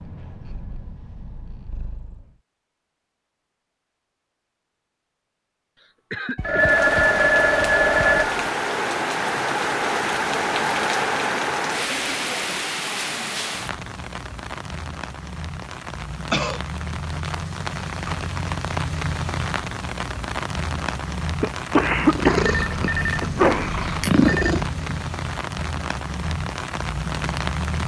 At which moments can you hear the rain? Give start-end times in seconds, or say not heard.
6.5-27.8.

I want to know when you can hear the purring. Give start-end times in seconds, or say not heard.
0.0-2.4, 21.9-25.0.